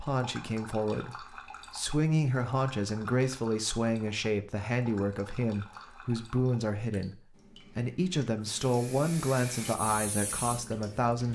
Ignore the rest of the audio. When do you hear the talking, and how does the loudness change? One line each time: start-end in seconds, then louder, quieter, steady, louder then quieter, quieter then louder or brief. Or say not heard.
0.0-11.3 steady.